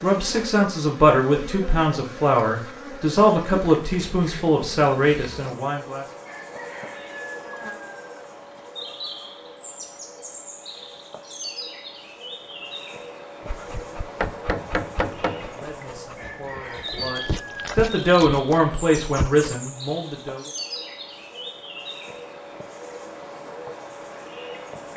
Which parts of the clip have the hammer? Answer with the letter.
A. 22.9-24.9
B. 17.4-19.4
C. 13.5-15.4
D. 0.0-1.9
C.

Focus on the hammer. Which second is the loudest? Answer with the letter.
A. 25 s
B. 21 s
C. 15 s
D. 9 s
C.